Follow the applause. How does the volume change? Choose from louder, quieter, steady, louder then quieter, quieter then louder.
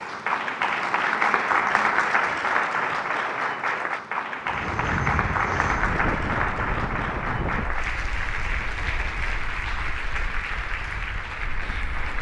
quieter.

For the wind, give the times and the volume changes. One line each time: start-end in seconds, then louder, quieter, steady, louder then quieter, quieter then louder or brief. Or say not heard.
4.4-12.1 quieter.